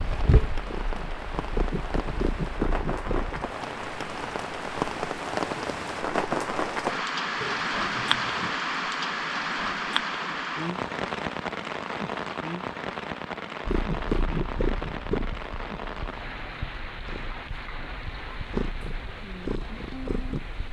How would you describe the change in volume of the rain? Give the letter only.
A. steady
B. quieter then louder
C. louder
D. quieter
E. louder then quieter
E.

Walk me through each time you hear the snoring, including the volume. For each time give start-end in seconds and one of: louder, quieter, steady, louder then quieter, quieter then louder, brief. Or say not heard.
not heard.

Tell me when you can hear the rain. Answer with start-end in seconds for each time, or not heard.
0.0-20.6.